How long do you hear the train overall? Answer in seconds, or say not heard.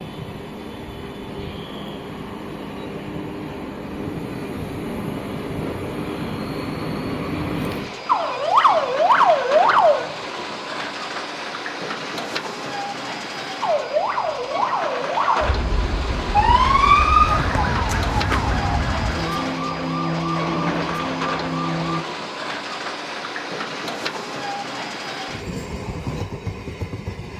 27 s.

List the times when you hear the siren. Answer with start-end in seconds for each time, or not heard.
8.1-10.1, 13.6-22.1.